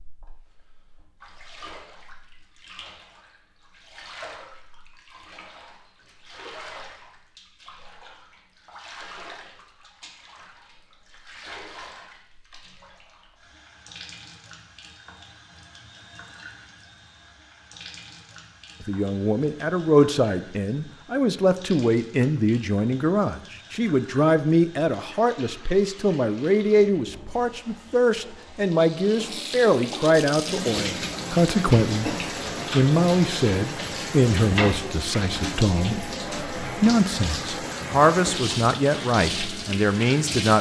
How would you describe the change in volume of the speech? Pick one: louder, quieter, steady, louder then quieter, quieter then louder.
steady.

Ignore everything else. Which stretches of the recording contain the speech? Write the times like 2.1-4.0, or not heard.
18.8-40.5.